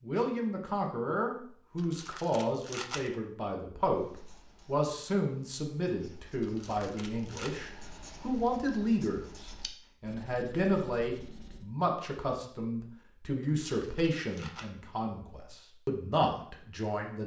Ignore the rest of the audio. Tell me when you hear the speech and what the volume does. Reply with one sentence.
The speech can be heard from 0.0 to 17.2 s, at a steady volume.